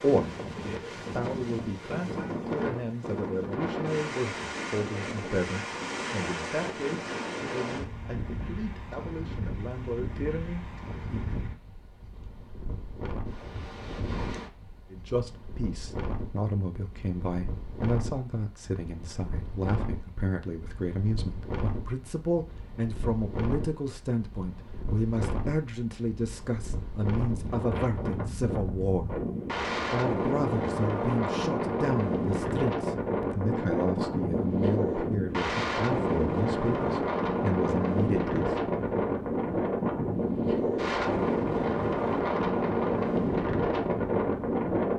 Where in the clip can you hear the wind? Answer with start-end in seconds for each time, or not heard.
0.0-44.9.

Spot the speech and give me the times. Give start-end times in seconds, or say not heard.
0.0-11.3, 14.9-29.1, 29.9-38.5.